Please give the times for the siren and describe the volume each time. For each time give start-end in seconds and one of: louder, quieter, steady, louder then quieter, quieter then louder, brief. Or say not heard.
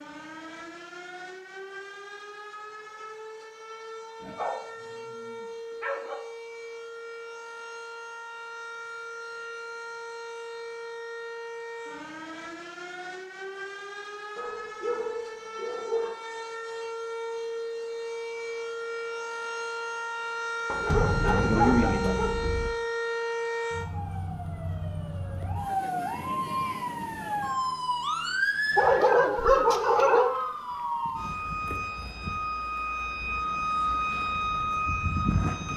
0.0-35.7 louder.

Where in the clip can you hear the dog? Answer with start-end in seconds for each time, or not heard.
4.2-6.2, 14.3-16.1, 20.6-22.7, 28.8-30.3.